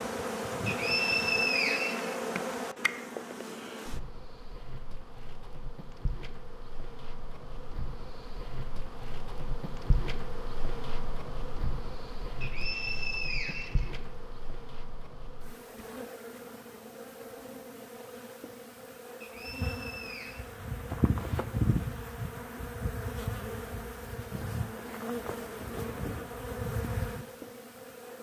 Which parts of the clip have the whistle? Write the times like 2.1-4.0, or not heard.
0.7-2.2, 12.4-13.9, 19.2-20.4.